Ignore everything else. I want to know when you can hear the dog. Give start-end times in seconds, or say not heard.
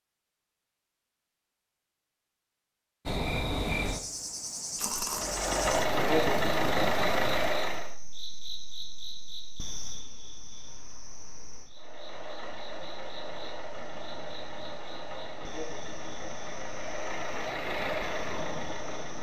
not heard.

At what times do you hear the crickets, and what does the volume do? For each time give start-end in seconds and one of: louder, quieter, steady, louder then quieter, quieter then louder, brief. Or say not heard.
3.0-19.1 quieter.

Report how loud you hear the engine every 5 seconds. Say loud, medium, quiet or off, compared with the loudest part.
off, loud, quiet, medium.